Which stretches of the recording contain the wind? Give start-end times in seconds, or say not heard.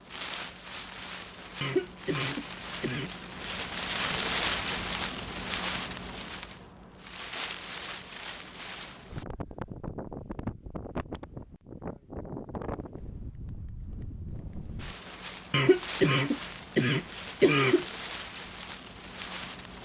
0.0-19.7.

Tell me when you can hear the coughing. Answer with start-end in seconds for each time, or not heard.
1.6-3.1, 15.5-17.9.